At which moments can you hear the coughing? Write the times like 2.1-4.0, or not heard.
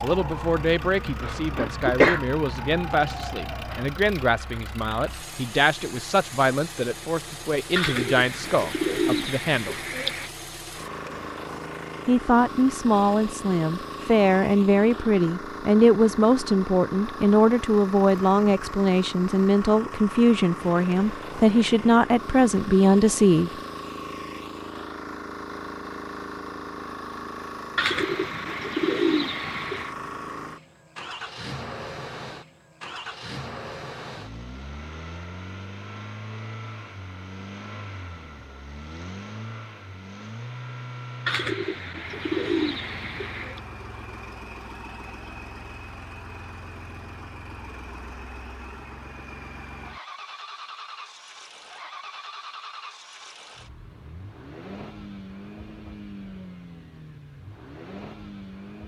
1.2-2.2.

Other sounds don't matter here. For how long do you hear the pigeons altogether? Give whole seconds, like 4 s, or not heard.
7 s.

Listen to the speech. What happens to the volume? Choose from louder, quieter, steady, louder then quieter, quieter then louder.
louder.